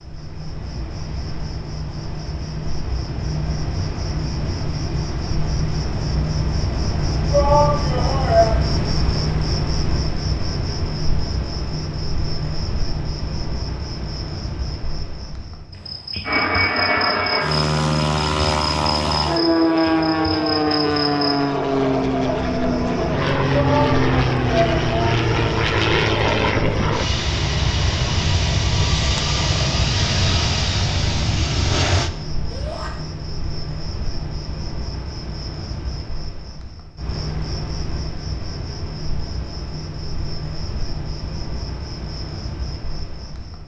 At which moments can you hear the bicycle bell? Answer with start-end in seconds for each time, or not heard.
not heard.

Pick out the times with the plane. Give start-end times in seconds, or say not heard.
16.2-32.1.